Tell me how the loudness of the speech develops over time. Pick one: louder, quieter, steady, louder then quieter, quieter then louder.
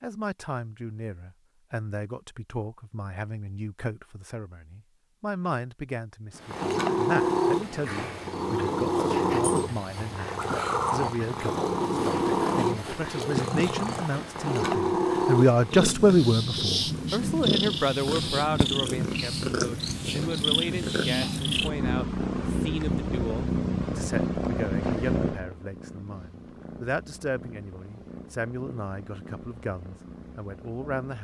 louder then quieter.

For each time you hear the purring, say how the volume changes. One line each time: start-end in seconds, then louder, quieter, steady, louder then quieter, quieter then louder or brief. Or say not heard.
6.3-31.1 quieter.